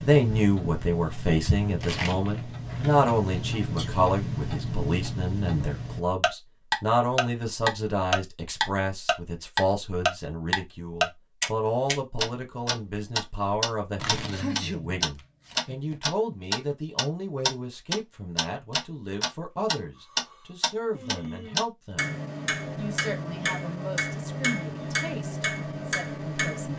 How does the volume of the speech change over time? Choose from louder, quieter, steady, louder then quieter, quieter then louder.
quieter.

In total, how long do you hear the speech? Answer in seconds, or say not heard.
26 s.